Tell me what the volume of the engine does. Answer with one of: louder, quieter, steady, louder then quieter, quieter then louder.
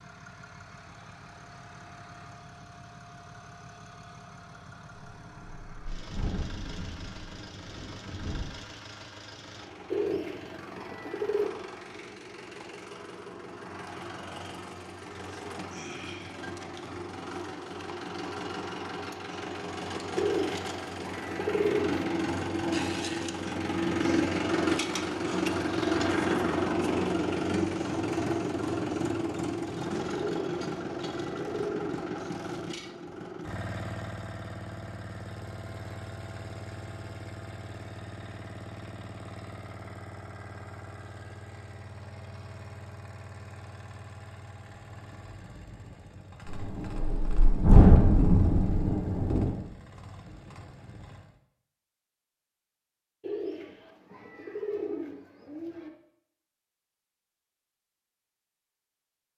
louder then quieter.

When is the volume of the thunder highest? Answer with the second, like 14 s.
48 s.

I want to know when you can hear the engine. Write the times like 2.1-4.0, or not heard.
0.0-51.4.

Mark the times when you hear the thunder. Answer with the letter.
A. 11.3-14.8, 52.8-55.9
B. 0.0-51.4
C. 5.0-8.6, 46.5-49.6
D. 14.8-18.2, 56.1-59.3
C.